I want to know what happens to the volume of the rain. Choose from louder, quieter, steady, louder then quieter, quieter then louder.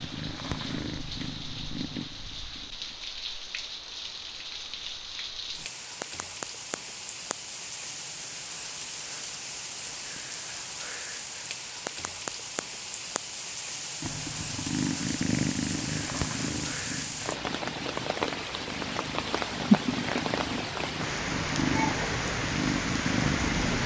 louder.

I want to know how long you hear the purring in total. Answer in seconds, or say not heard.
13 s.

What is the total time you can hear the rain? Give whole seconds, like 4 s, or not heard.
24 s.